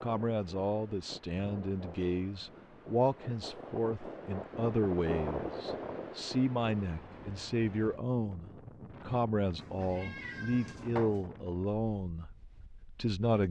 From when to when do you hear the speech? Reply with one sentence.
You can hear the speech from 0.0 to 12.3 s and from 12.9 to 13.4 s.